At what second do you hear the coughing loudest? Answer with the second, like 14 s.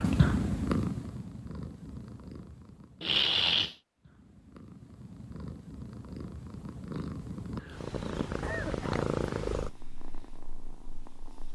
3 s.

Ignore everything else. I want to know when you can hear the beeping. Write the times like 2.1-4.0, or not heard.
not heard.